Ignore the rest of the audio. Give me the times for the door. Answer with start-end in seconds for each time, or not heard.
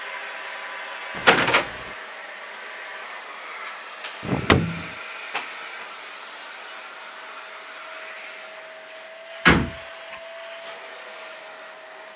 1.1-1.8, 4.2-4.8, 9.4-10.2.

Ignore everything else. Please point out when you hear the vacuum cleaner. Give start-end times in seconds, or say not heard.
0.0-12.1.